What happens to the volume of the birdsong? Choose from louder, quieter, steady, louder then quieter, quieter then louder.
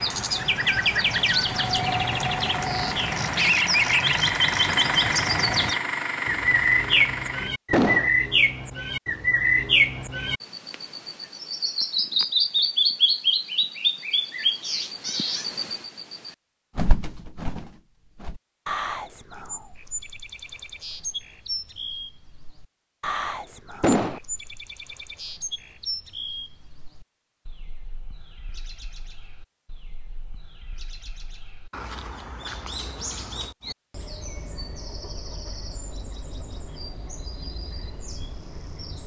quieter.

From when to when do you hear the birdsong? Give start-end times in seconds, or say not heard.
0.0-39.0.